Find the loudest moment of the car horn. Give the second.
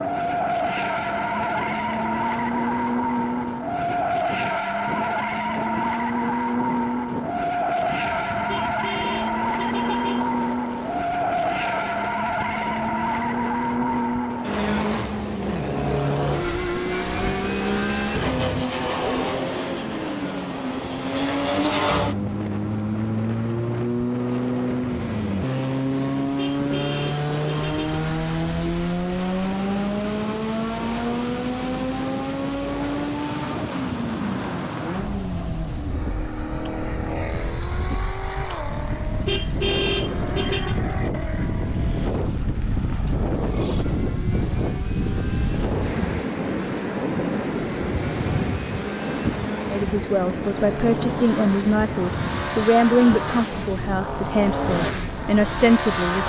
40 s.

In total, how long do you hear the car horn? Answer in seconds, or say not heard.
5 s.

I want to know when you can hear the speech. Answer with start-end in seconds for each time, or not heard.
49.7-56.2.